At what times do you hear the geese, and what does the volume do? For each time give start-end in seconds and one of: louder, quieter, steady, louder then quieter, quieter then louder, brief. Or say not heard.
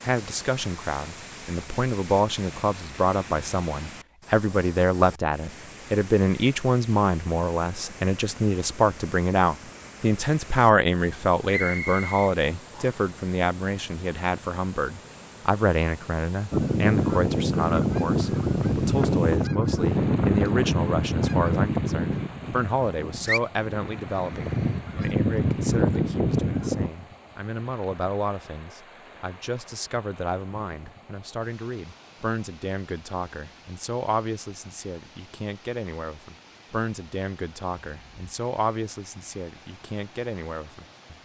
16.5-26.9 quieter then louder.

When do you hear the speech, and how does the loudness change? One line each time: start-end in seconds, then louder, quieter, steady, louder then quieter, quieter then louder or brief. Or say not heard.
0.0-41.2 quieter.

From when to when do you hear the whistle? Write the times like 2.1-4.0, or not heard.
11.5-13.1.